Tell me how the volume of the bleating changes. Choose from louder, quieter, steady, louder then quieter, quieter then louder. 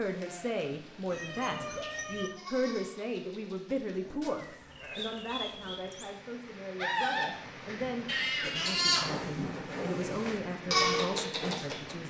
louder.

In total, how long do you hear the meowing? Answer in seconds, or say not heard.
4 s.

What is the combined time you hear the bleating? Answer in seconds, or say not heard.
11 s.